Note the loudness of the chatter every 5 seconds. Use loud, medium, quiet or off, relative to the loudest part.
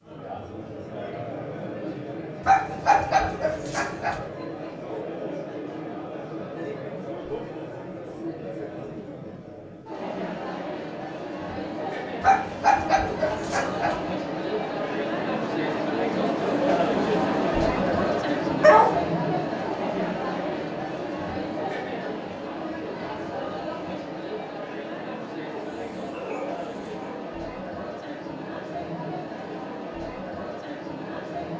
medium, medium, medium, loud, medium, medium, medium.